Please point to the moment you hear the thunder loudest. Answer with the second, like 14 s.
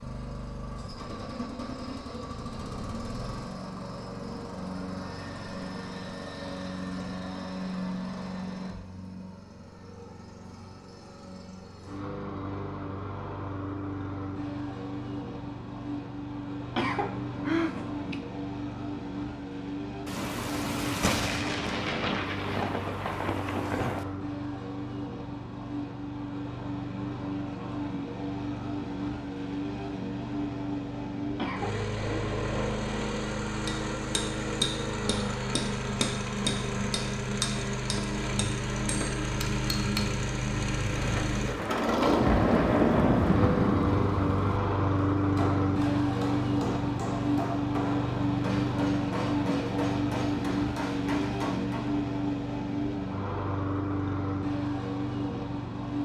43 s.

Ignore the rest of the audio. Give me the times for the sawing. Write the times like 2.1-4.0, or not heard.
not heard.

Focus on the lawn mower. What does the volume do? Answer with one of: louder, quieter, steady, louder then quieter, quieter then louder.
louder.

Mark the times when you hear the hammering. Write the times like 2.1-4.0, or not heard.
33.6-40.1, 45.2-51.9.